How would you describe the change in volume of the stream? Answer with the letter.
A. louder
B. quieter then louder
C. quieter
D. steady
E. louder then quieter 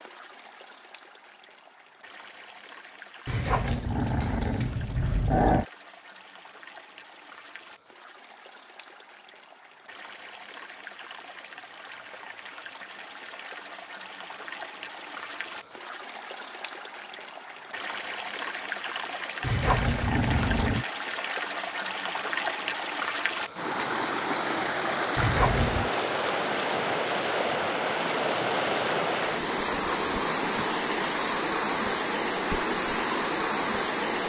A.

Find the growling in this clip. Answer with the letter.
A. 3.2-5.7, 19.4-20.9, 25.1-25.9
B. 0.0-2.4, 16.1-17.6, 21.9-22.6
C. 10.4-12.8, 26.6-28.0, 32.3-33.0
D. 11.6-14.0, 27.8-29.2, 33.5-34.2
A.